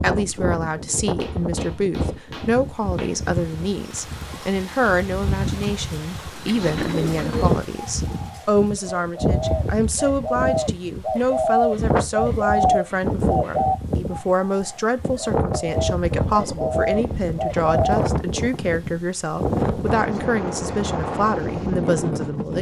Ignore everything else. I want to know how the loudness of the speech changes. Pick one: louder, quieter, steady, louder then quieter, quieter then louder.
steady.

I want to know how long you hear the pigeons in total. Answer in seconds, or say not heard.
12 s.